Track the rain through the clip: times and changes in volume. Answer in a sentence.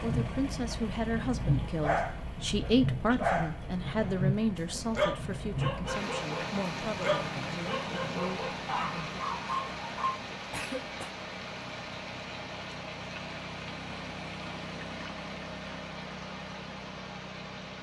The rain can be heard from 0.0 to 17.7 s, getting quieter.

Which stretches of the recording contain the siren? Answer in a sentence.
You can't hear the siren here.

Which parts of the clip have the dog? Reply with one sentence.
You can hear the dog from 1.4 to 4.1 s and from 4.8 to 10.2 s.